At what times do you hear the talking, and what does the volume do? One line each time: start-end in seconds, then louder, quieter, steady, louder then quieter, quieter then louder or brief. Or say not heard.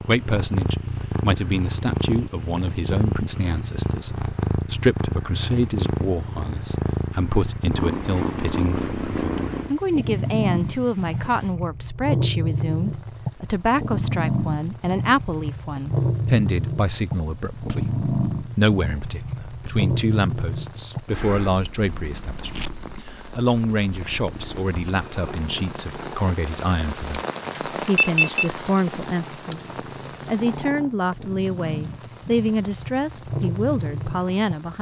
0.0-34.7 steady.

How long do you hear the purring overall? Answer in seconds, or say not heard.
35 s.